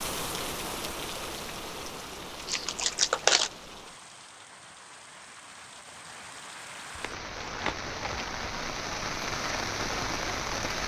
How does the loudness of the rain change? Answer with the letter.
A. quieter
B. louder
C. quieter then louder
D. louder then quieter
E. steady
C.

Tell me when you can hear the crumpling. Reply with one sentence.
You can hear the crumpling from 2.5 to 3.5 s and from 7.0 to 8.5 s.